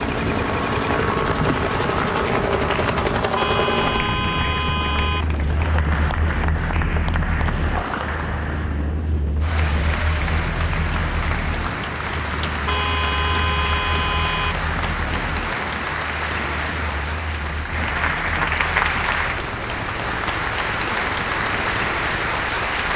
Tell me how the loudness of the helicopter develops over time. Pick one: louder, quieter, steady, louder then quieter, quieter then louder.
quieter.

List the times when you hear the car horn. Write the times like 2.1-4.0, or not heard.
3.4-5.2, 12.7-14.6.